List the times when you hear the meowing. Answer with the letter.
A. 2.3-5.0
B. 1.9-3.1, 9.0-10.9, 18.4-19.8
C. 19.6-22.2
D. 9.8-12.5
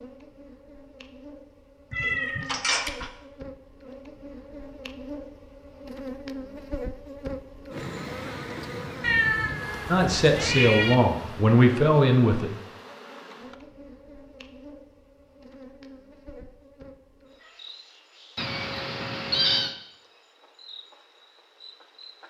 B.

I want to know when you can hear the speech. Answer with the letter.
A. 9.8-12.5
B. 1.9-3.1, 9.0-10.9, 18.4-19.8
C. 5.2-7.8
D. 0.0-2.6
A.